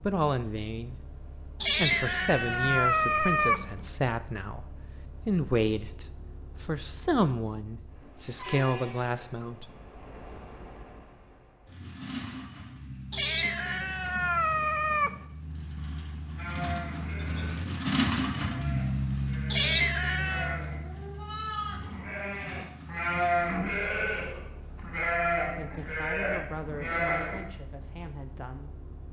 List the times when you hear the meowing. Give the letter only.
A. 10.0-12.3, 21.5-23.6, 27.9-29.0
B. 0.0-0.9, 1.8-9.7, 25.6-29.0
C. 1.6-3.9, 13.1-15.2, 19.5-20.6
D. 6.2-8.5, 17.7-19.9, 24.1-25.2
C.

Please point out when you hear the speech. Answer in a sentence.
You can hear the speech from 0.0 to 0.9 s, from 1.8 to 9.7 s and from 25.6 to 29.0 s.